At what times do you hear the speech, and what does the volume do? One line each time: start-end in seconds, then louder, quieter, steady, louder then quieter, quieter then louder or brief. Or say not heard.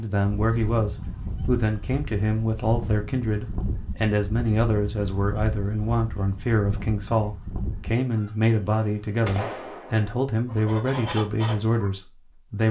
0.0-12.6 steady.